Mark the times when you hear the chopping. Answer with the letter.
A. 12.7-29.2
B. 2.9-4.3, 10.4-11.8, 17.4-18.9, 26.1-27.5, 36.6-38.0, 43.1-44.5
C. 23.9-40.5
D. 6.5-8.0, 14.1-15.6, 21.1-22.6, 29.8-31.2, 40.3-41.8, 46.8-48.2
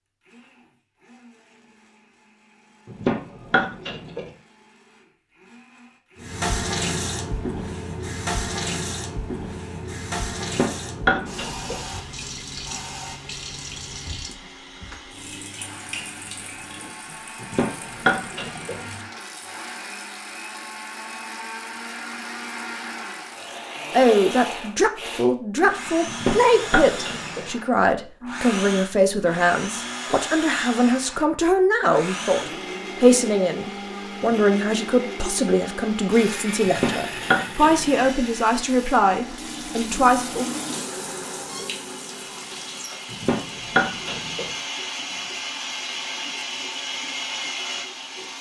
B.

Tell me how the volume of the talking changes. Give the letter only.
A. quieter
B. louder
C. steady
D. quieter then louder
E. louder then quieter
C.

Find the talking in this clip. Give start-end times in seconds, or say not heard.
23.9-40.5.